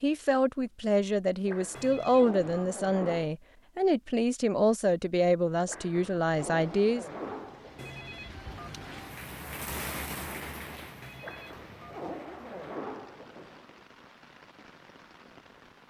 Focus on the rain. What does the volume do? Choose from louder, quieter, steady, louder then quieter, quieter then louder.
louder then quieter.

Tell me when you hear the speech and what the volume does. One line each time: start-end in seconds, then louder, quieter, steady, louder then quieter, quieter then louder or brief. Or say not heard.
0.0-7.0 steady.